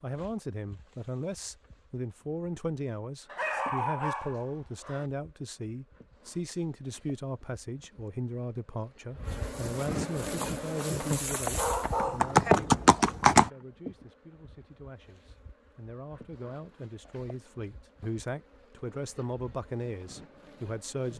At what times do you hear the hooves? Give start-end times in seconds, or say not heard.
10.2-13.5.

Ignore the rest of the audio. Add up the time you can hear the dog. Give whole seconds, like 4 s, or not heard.
3 s.